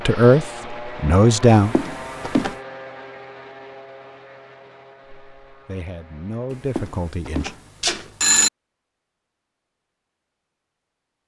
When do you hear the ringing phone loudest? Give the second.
8 s.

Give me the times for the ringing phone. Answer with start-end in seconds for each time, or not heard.
1.5-2.5, 6.5-8.5.